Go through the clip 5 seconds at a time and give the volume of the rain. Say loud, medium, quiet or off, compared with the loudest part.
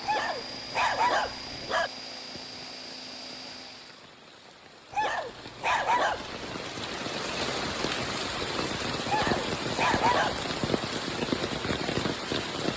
quiet, loud, loud.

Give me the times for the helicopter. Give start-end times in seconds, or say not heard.
0.0-4.0.